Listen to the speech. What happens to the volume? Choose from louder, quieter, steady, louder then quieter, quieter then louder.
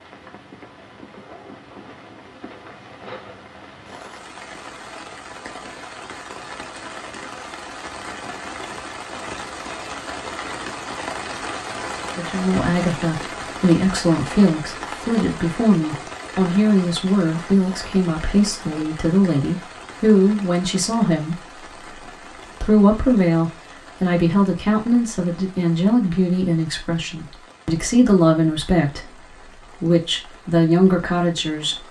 steady.